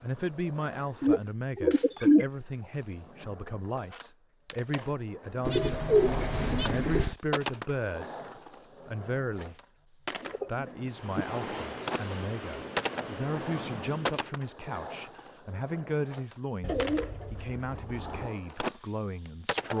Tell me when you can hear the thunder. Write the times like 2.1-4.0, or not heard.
not heard.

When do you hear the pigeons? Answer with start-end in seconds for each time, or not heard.
1.0-2.2, 5.5-7.2, 10.2-11.2, 16.6-18.3.